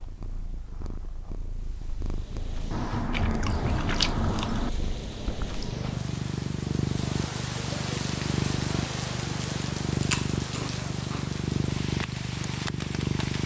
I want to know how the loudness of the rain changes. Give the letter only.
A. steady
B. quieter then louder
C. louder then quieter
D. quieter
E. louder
A.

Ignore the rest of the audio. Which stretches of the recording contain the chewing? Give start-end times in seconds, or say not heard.
2.7-4.7, 10.0-11.4.